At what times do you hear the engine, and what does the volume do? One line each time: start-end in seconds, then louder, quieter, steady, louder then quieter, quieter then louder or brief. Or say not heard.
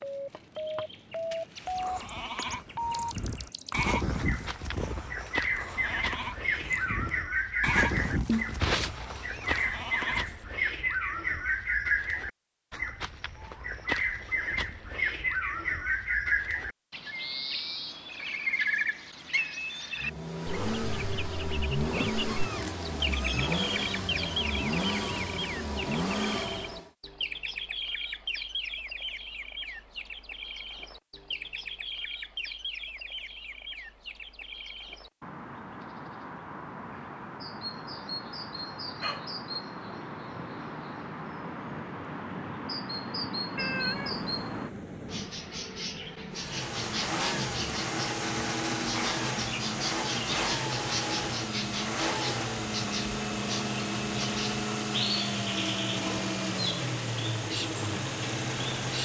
19.9-26.9 steady
46.3-59.0 steady.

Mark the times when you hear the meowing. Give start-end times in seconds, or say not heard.
8.2-9.7, 21.9-23.5, 43.5-45.4.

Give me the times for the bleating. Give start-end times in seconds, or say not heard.
1.6-10.3.